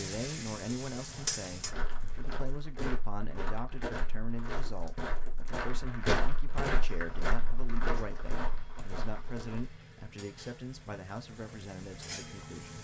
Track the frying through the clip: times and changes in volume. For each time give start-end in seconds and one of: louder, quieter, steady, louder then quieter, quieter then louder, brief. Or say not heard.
0.0-2.4 brief
6.8-12.7 louder.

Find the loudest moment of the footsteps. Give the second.
6 s.